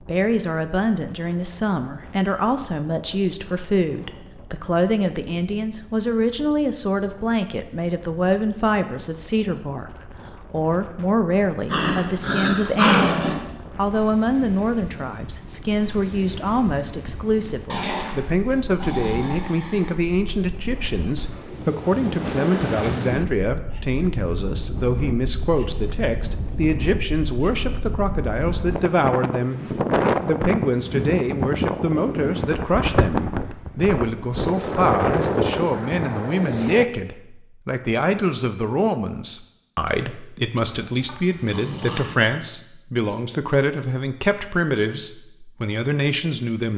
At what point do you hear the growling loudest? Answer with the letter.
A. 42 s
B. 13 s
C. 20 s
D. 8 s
B.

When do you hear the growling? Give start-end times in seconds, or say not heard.
11.7-13.3, 17.6-20.0, 40.7-42.2.